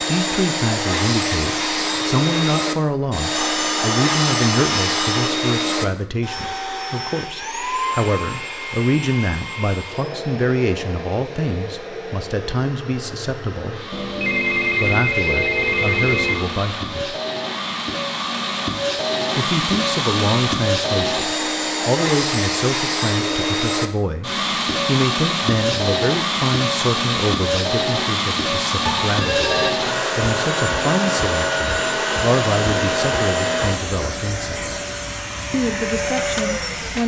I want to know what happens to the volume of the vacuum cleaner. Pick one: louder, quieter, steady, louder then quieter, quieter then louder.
quieter then louder.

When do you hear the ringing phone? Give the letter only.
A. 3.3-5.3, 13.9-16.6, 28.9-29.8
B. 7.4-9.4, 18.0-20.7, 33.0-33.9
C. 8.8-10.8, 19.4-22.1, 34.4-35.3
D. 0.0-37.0
A.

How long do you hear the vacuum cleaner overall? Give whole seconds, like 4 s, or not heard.
37 s.